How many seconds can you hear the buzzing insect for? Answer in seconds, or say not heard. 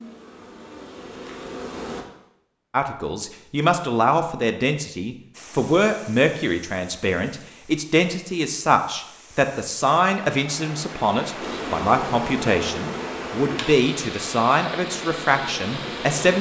7 s.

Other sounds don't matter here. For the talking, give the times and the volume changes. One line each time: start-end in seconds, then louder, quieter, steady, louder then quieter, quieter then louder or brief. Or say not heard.
2.7-16.3 steady.